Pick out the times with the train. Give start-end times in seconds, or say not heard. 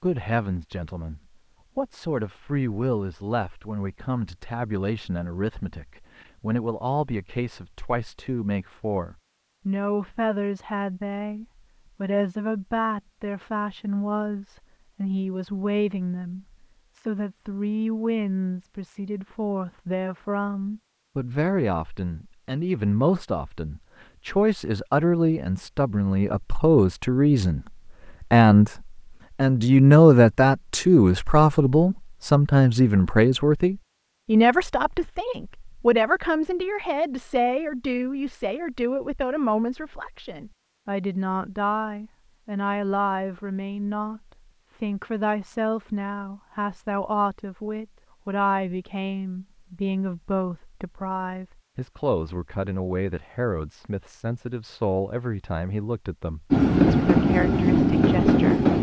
56.5-58.7.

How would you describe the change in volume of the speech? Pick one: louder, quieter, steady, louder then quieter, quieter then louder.
louder then quieter.